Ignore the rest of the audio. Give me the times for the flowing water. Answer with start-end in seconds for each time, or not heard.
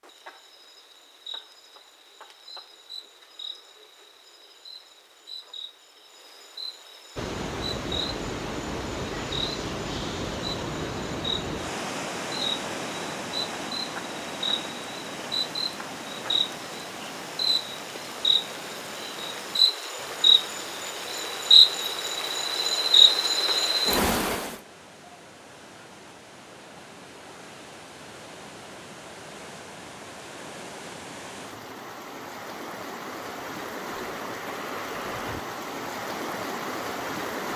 7.2-37.5.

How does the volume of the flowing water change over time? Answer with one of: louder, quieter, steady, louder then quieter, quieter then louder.
quieter then louder.